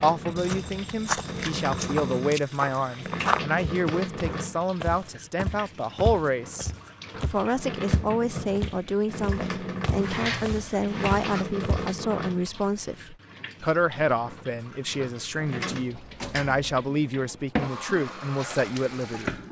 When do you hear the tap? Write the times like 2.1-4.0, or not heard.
0.0-19.4.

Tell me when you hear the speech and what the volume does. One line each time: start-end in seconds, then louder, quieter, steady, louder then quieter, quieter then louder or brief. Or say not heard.
0.0-19.4 steady.